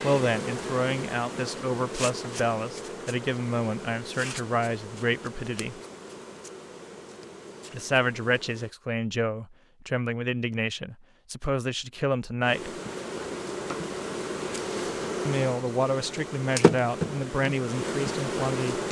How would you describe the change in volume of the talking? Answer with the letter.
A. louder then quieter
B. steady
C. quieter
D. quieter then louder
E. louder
B.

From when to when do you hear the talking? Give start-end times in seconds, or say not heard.
0.0-5.8, 7.7-12.8, 15.2-18.8.